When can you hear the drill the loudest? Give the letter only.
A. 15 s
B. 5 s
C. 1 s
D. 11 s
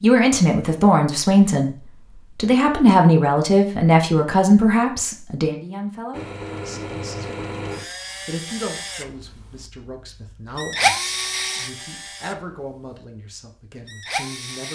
D.